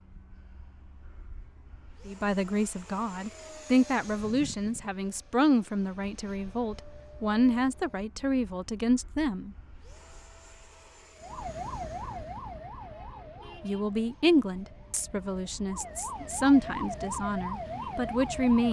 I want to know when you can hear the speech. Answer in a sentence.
The speech can be heard from 2.0 to 9.6 s and from 13.6 to 18.6 s.